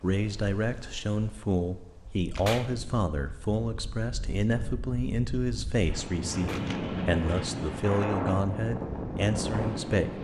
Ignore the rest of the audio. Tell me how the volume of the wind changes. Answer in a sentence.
The volume of the wind goes up.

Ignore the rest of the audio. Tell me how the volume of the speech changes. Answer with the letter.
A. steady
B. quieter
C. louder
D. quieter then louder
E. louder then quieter
A.